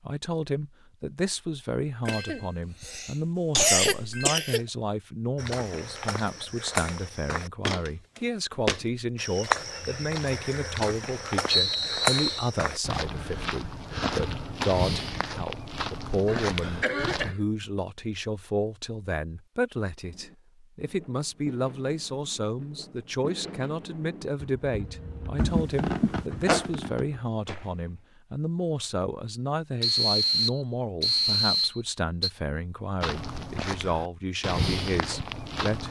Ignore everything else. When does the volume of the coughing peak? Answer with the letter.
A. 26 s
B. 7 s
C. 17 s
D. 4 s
D.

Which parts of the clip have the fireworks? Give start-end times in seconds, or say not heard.
20.0-27.9.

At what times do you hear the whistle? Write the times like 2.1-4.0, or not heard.
11.5-12.5, 29.8-32.3.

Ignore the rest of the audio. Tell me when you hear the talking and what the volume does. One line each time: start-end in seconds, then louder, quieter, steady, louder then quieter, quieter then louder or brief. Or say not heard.
0.0-35.8 steady.